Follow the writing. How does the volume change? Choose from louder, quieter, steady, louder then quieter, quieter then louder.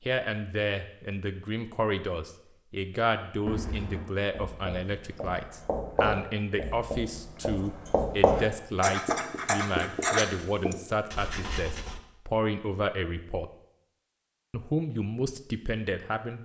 louder.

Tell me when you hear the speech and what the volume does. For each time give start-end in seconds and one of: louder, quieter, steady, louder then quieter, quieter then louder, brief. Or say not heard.
0.0-13.5 steady
14.5-16.4 brief.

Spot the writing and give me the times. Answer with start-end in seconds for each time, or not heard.
3.5-12.0.